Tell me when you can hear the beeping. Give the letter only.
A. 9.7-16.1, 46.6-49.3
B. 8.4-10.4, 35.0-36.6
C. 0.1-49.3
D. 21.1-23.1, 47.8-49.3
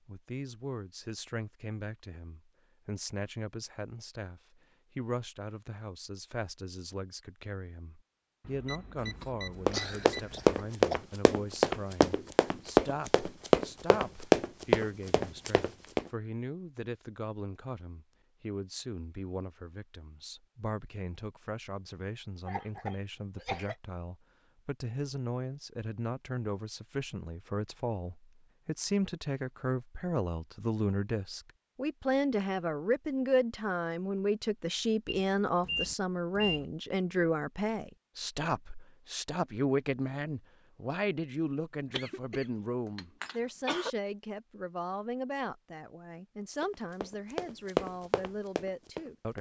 B.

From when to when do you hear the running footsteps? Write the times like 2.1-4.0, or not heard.
9.7-16.1, 46.6-49.3.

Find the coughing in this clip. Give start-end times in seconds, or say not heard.
8.9-11.0, 22.4-23.8, 41.9-43.9.